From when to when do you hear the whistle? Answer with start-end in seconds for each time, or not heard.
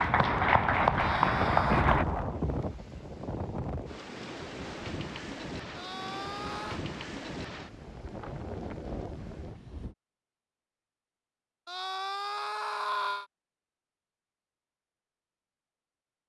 not heard.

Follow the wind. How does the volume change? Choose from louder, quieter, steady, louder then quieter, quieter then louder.
quieter.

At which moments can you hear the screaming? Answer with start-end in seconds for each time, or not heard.
0.9-1.9, 5.8-6.8, 11.7-13.2.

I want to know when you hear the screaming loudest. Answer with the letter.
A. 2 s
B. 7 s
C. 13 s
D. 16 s
C.